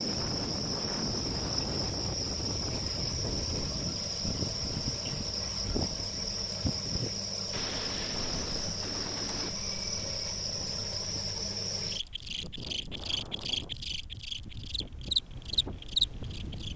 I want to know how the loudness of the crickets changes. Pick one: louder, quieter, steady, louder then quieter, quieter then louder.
steady.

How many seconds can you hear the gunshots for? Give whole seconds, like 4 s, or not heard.
2 s.